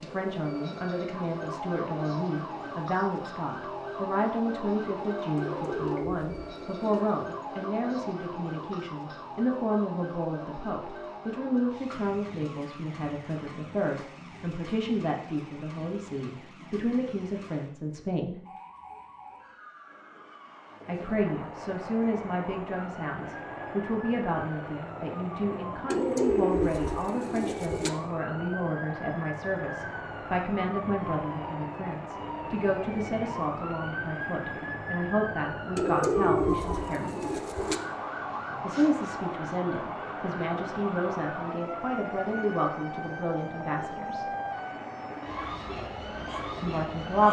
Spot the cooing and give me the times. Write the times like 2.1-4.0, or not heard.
5.3-7.0, 25.9-27.9, 35.8-37.8.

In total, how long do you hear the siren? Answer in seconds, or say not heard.
47 s.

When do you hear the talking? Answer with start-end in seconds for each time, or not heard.
0.0-18.4, 20.9-37.3, 38.6-44.2, 46.6-47.2.